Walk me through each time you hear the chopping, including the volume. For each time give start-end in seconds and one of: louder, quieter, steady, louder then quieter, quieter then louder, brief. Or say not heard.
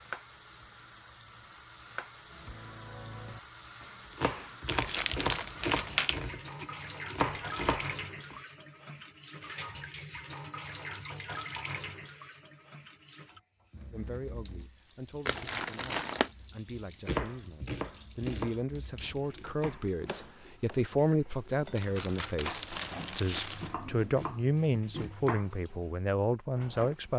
0.0-8.4 louder
17.1-25.6 quieter then louder.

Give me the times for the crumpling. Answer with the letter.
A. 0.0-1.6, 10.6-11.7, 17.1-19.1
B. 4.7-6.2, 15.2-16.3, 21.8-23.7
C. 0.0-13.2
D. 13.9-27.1
B.